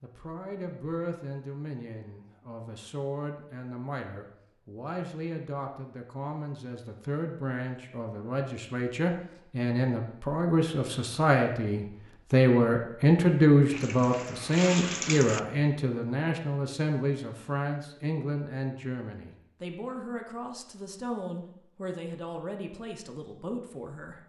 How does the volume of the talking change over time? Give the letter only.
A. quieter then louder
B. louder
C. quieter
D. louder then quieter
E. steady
D.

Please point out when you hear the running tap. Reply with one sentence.
You can hear the running tap from 13.7 to 15.4 s.